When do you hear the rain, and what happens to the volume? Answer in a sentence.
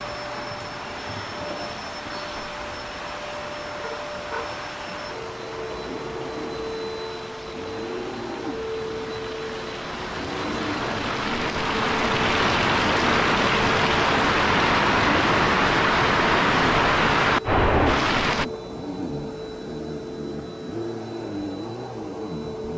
The rain can be heard from 0.0 to 18.4 s, getting louder.